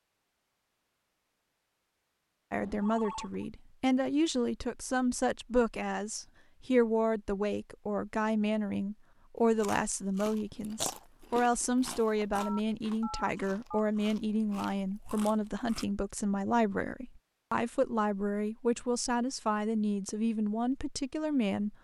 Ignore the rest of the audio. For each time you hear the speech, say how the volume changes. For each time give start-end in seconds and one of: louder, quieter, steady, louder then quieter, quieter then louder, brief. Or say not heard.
2.5-21.7 steady.